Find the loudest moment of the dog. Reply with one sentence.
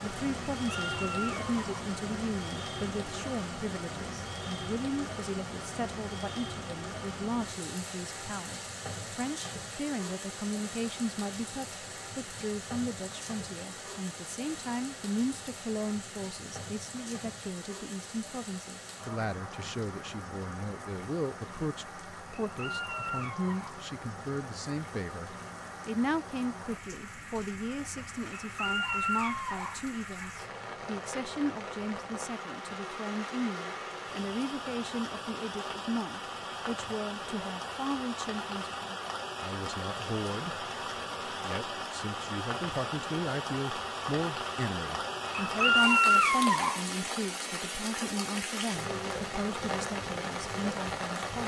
The volume of the dog peaks at 46 seconds.